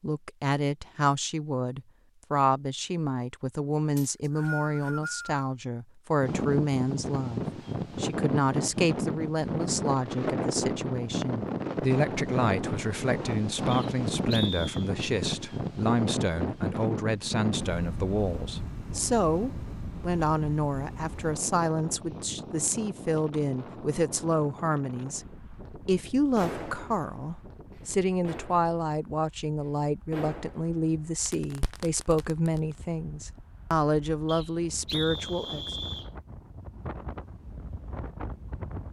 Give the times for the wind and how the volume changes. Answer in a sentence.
You can hear the wind from 6.2 to 38.8 s, getting quieter then louder.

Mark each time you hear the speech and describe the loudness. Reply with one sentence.
You can hear the speech from 0.0 to 35.8 s, at a steady volume.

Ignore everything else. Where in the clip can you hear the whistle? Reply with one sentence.
The whistle can be heard from 4.0 to 5.5 s, from 13.7 to 14.9 s and from 34.2 to 36.1 s.